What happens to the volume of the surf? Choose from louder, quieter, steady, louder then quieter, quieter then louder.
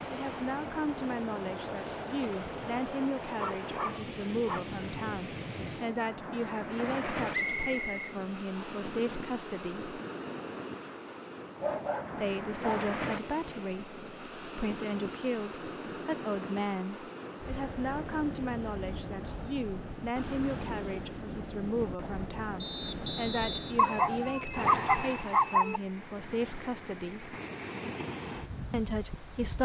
steady.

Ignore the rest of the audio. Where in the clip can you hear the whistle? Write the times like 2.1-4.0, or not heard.
7.3-8.9, 22.6-24.4.